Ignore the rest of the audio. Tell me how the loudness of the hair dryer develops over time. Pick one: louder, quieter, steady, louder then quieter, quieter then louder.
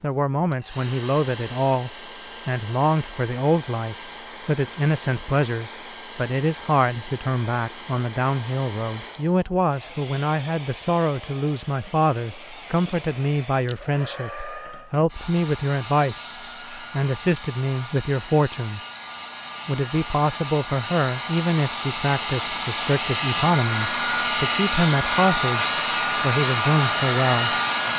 louder.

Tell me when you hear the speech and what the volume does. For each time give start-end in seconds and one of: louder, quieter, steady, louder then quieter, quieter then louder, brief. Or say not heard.
0.0-18.8 steady
19.6-27.6 steady.